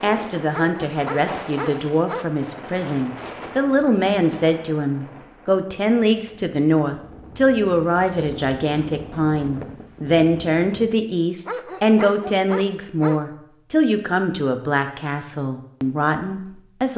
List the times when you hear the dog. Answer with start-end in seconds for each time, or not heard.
0.5-2.3, 11.4-13.2.